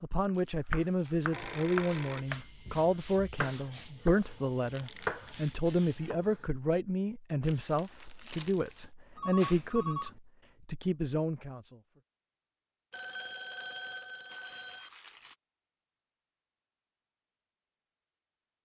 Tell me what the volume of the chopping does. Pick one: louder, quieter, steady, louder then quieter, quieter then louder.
quieter then louder.